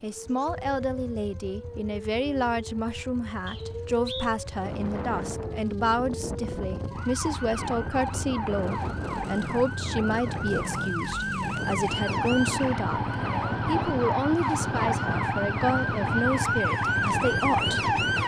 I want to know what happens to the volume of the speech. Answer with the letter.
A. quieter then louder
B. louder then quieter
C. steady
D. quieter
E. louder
C.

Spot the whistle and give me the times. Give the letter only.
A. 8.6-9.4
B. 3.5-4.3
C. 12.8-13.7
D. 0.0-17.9
B.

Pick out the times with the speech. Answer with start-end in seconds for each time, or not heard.
0.0-17.9.